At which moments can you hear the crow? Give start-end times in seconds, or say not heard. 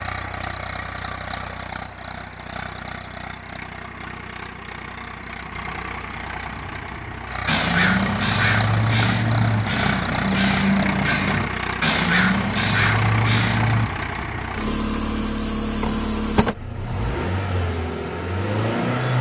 7.5-13.9.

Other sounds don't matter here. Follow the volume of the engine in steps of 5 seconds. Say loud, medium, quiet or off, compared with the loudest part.
medium, loud, loud, loud.